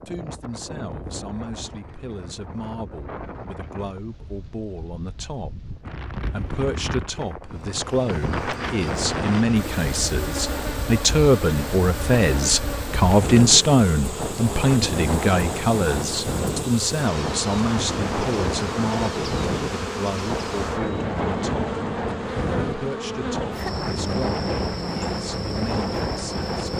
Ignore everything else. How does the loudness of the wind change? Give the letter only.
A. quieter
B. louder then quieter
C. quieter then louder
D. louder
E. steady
D.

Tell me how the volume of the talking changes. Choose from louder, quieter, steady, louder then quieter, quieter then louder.
louder then quieter.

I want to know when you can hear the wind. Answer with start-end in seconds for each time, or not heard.
0.0-26.7.